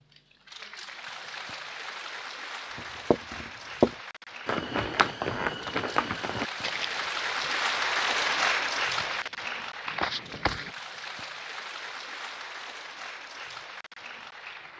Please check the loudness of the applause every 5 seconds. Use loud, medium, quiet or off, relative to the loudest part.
medium, loud, medium.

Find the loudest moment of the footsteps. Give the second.
4 s.